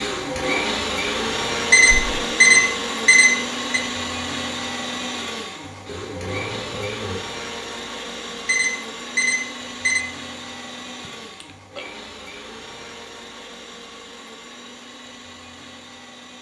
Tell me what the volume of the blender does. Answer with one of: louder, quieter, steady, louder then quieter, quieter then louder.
quieter.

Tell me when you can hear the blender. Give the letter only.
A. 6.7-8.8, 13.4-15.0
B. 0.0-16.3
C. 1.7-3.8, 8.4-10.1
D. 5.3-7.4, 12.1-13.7
B.